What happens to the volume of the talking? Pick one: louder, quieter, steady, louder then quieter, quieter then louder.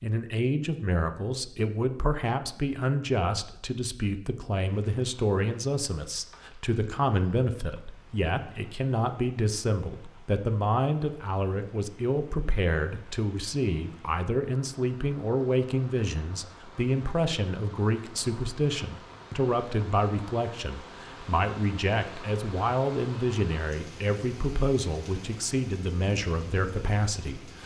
steady.